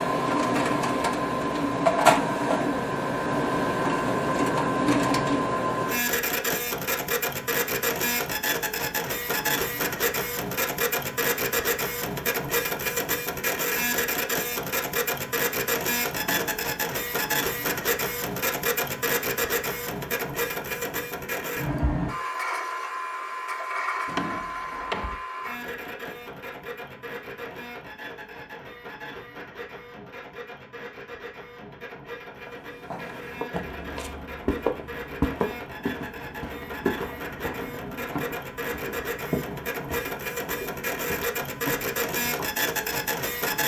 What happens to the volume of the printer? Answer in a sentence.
The volume of the printer goes down, then up.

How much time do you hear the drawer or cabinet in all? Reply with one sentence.
The drawer or cabinet can be heard for 2 seconds in total.